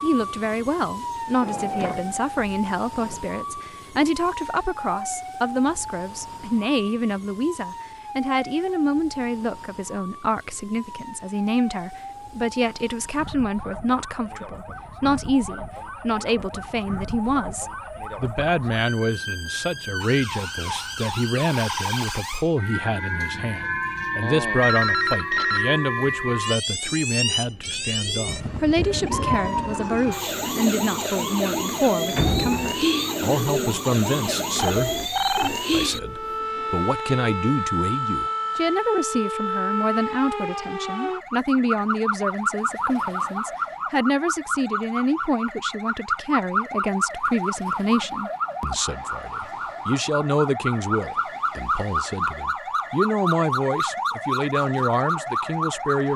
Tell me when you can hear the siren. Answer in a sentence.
You can hear the siren from 0.0 to 56.1 s.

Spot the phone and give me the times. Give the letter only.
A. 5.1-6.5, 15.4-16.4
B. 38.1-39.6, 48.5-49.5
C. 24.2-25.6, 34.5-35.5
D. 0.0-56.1
C.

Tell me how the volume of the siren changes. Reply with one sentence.
The loudness of the siren goes up.